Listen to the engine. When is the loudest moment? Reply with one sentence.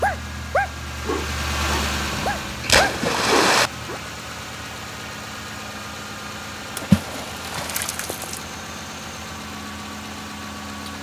The volume of the engine peaks at 2 seconds.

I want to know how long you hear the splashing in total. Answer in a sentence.
You can hear the splashing for 3 seconds altogether.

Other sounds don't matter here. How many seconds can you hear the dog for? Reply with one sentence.
You can hear the dog for 4 seconds altogether.